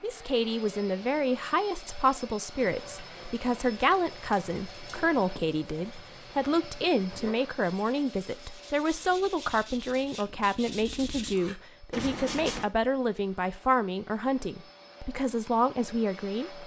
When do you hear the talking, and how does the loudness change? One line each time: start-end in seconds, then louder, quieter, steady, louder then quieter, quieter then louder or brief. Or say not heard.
0.0-16.6 steady.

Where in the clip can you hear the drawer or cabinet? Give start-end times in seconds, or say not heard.
not heard.